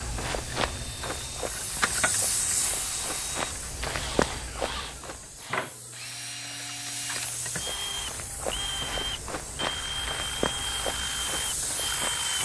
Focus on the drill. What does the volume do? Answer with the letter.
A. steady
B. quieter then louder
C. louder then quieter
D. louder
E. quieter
D.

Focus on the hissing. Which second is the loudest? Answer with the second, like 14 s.
2 s.